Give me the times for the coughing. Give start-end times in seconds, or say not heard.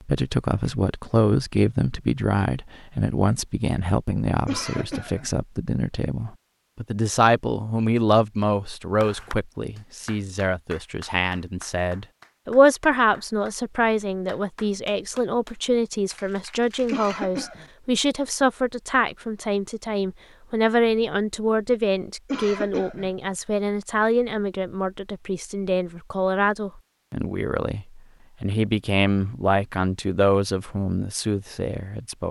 4.5-5.3, 16.9-17.6, 22.2-23.1.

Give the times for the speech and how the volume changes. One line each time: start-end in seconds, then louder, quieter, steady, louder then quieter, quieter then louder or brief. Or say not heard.
0.1-32.2 steady.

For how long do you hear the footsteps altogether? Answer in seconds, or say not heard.
not heard.